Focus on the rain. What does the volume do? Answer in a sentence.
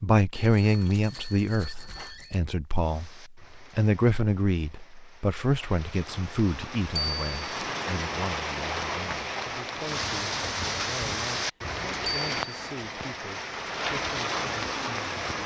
The loudness of the rain goes up.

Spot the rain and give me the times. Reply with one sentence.
The rain can be heard from 2.7 to 15.4 s.